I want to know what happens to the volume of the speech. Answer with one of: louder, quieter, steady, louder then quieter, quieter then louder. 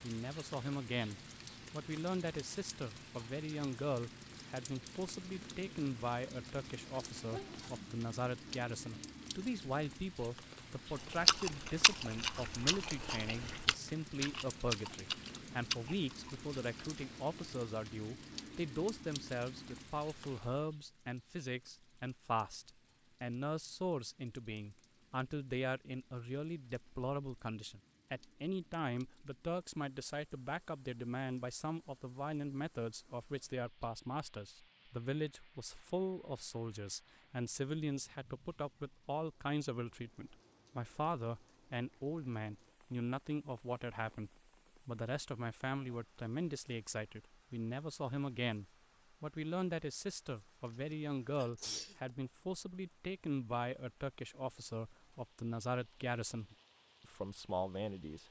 steady.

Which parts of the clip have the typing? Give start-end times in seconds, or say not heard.
not heard.